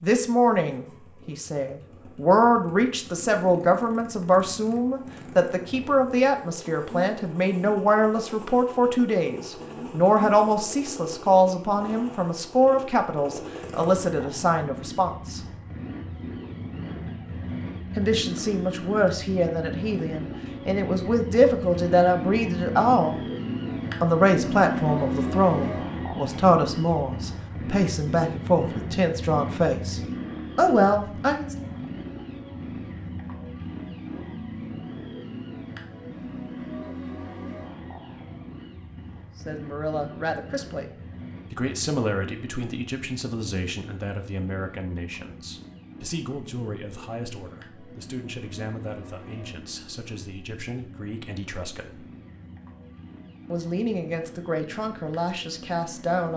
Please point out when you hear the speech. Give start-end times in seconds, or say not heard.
0.0-15.4, 17.9-23.2, 24.0-31.6, 39.5-40.9, 41.5-52.0, 53.5-56.3.